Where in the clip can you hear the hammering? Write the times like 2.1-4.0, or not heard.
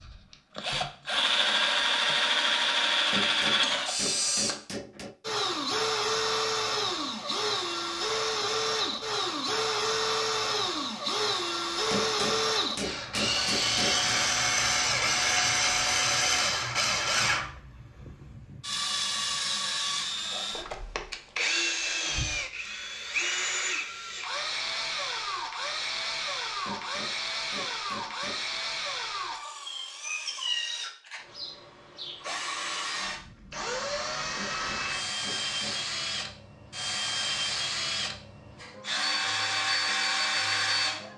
3.1-5.2, 11.9-14.2, 26.6-28.6, 34.4-36.0.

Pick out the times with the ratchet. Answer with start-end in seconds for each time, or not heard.
not heard.